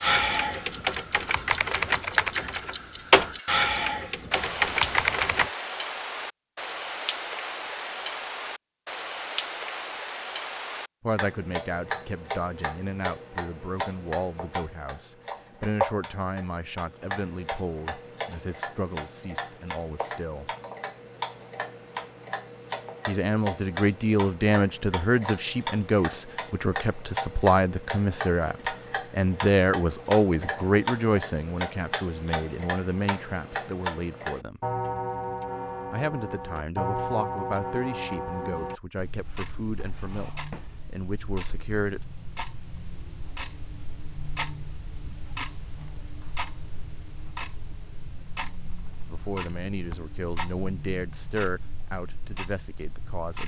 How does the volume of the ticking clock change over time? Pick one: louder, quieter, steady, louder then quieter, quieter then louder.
quieter.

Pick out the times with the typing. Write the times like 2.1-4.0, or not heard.
0.0-5.5.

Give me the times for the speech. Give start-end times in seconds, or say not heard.
11.0-20.5, 23.1-34.6, 35.9-42.0, 49.0-53.4.